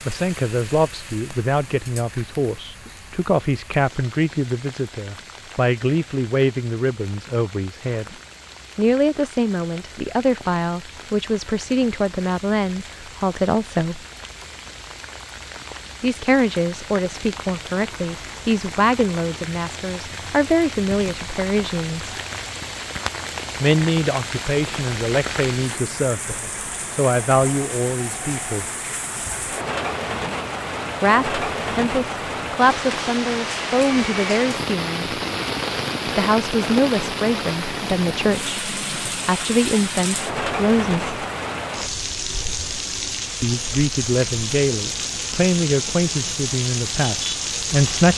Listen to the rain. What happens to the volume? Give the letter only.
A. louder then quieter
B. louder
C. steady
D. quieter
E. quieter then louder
B.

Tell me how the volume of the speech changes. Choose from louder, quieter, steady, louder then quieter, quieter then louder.
steady.